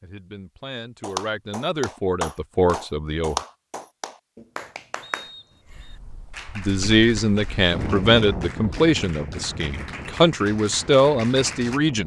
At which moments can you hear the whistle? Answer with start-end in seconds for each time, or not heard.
5.0-5.9.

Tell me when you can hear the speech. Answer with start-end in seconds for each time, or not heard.
0.0-3.4, 6.5-12.0.